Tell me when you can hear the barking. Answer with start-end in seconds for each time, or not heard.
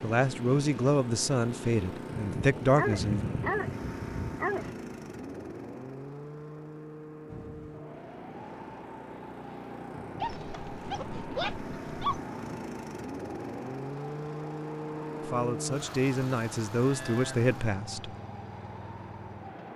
2.4-4.7, 10.2-12.2.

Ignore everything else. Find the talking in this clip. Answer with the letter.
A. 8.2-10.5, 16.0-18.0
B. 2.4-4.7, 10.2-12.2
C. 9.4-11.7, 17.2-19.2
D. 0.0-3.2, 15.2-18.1
D.